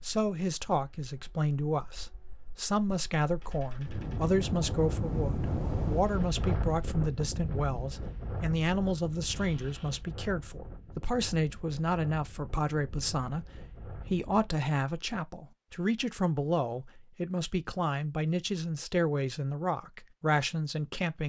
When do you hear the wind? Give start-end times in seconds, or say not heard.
0.0-14.6.